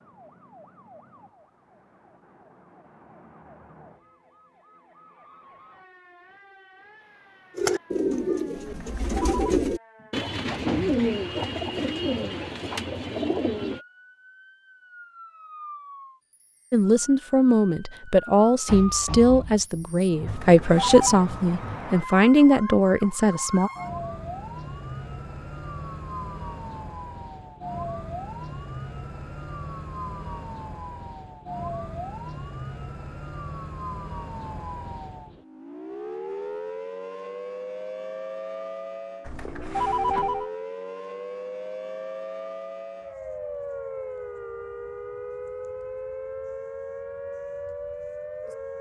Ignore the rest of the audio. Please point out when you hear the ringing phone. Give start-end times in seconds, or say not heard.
8.7-9.6, 20.2-21.2, 39.2-40.5.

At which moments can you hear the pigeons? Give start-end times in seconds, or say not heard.
7.5-13.8.